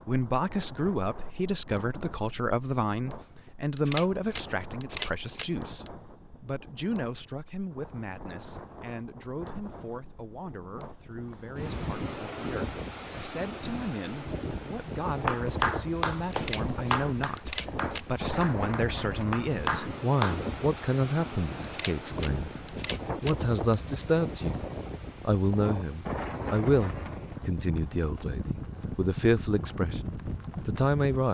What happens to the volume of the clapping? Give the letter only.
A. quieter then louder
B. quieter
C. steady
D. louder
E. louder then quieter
A.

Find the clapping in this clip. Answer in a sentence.
The clapping can be heard from 15.2 to 20.4 s.